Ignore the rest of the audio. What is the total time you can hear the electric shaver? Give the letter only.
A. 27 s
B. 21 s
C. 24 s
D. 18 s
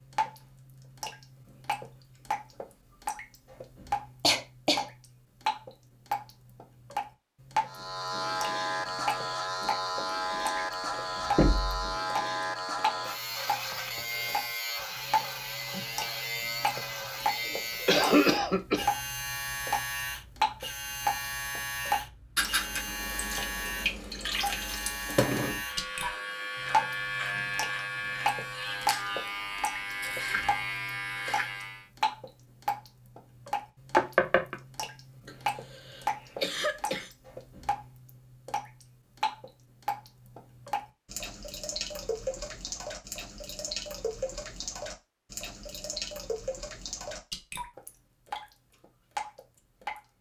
C.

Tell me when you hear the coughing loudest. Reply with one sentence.
The loudest moment of the coughing is at 18 seconds.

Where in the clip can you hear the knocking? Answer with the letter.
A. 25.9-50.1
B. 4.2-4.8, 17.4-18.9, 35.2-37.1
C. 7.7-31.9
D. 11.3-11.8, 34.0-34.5
D.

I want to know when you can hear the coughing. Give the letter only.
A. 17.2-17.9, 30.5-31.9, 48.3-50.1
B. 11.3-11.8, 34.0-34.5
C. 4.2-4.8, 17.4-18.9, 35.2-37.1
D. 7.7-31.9
C.